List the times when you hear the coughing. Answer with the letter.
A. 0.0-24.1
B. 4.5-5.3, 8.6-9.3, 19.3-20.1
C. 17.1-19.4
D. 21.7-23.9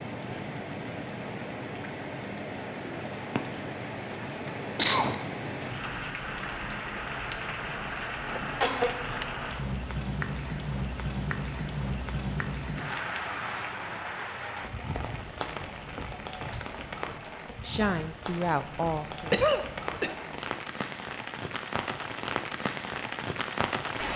B.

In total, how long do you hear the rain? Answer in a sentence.
The rain can be heard for 24 seconds in total.